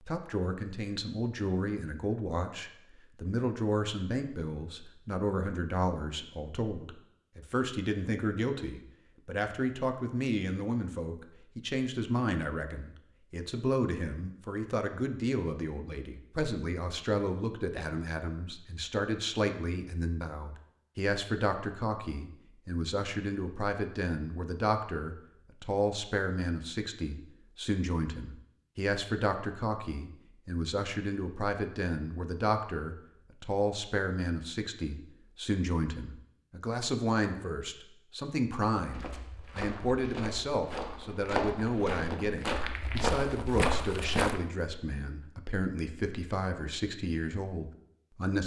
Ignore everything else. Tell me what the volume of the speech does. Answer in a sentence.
The loudness of the speech stays about the same.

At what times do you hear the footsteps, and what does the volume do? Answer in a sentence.
The footsteps can be heard from 38.8 to 44.4 s, getting louder.